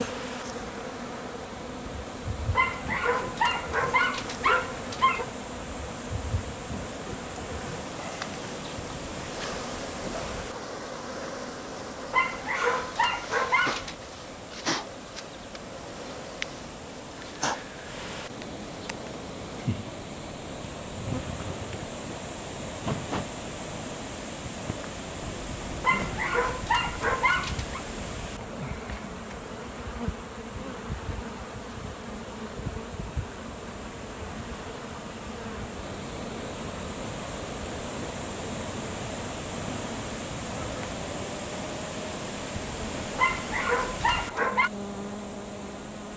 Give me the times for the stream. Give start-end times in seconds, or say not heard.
0.0-46.1.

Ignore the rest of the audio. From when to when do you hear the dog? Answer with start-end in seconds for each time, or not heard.
2.5-5.2, 12.1-13.9, 25.8-27.8, 43.1-44.7.